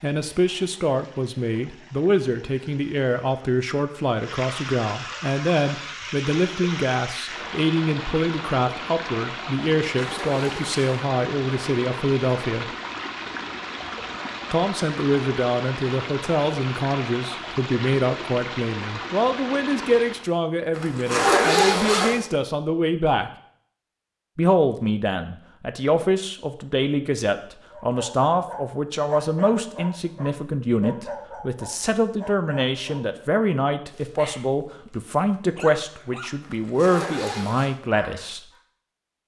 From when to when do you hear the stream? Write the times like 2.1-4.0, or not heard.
0.0-20.3.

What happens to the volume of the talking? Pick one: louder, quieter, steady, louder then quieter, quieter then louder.
steady.